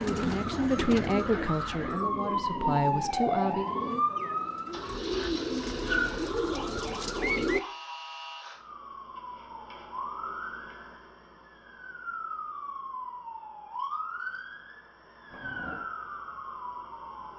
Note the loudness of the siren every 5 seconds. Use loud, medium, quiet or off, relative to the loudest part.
loud, medium, medium, medium.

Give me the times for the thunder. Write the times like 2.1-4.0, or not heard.
15.3-15.8.